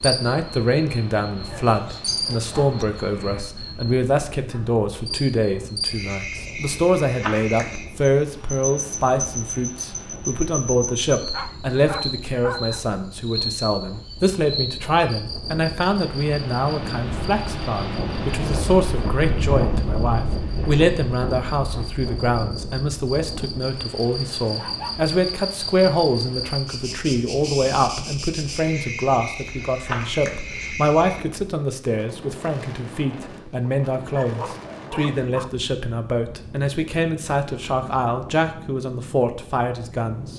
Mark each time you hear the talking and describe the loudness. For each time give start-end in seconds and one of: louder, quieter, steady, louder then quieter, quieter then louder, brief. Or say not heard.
0.0-40.3 steady.